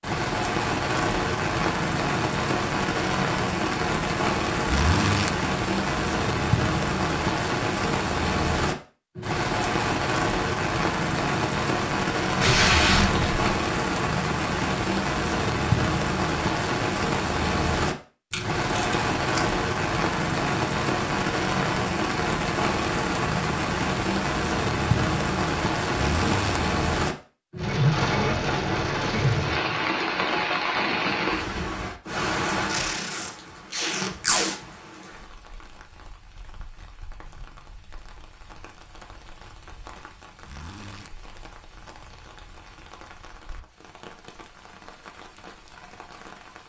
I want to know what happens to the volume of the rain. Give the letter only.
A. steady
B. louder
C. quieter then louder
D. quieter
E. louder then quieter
D.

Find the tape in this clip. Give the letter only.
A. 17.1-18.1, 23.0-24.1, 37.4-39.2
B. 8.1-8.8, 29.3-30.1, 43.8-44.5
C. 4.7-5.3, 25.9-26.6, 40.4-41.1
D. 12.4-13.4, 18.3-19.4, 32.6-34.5
D.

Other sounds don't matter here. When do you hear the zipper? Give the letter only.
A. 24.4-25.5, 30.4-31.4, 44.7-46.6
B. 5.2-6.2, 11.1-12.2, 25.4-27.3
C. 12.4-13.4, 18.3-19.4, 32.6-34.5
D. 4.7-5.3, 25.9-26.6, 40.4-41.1
D.